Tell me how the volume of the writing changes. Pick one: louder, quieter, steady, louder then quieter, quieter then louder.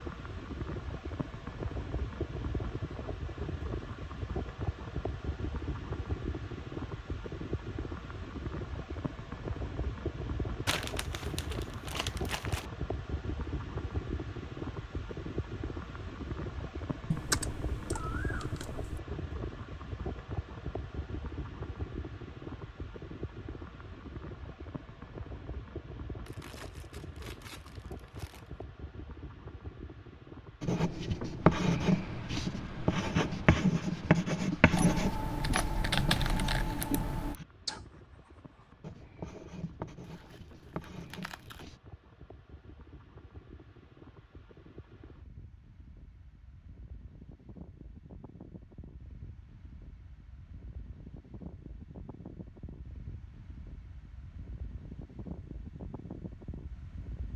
quieter.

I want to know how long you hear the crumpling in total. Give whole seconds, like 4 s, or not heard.
6 s.